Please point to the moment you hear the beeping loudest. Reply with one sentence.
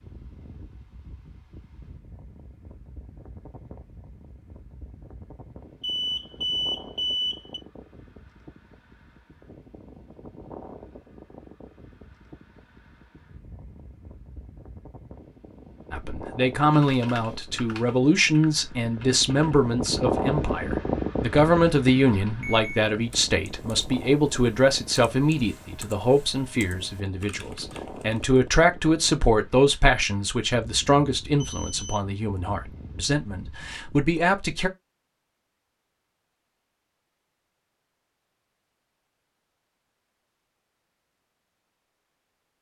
The loudest moment of the beeping is at 7 seconds.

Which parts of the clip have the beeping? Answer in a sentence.
The beeping can be heard from 5.8 to 7.6 s, from 22.2 to 22.8 s and from 31.4 to 32.0 s.